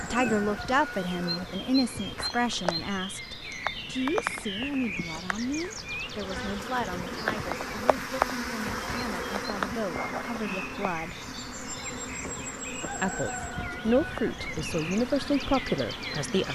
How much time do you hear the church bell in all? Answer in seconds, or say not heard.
not heard.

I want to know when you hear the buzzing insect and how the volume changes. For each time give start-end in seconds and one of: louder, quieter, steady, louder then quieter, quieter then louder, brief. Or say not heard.
0.0-16.4 louder then quieter.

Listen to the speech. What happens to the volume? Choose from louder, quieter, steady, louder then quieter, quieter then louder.
quieter then louder.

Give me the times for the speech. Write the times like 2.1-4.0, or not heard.
0.0-11.2, 13.0-16.4.